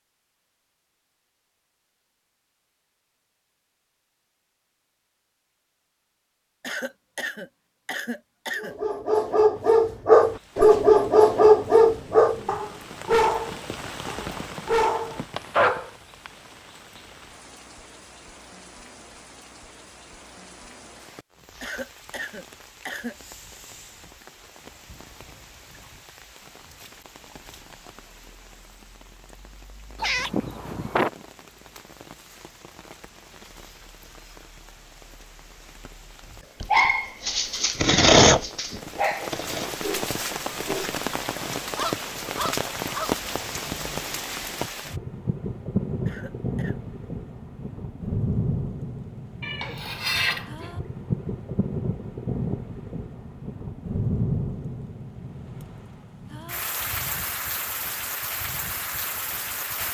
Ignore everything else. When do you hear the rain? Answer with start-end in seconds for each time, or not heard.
10.2-59.8.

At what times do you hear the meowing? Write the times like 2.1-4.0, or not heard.
10.6-12.6, 29.9-31.2, 49.4-50.8.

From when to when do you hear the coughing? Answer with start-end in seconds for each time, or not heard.
6.6-8.8, 21.6-23.1, 46.0-46.8.